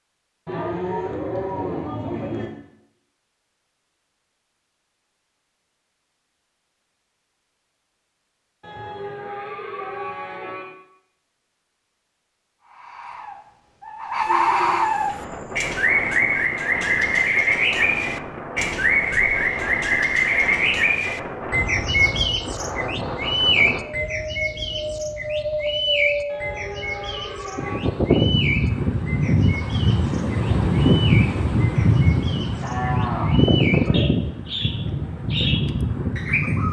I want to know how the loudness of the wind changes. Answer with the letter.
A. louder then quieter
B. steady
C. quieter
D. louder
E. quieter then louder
D.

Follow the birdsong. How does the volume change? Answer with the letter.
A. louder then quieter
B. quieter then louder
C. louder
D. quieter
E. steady
D.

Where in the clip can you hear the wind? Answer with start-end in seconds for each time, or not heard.
14.8-36.6.